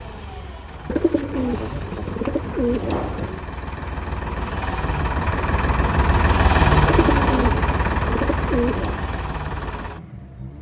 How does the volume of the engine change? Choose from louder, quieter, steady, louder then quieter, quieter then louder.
louder then quieter.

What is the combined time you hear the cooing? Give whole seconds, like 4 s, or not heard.
5 s.